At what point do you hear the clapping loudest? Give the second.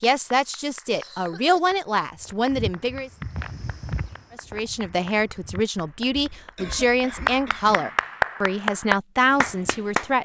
8 s.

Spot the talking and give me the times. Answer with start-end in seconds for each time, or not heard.
0.0-3.1, 4.4-10.1.